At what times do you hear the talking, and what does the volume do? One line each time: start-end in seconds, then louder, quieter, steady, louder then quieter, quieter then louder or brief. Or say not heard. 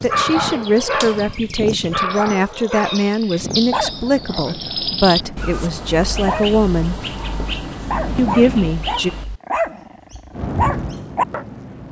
0.0-7.0 steady
8.2-9.1 brief.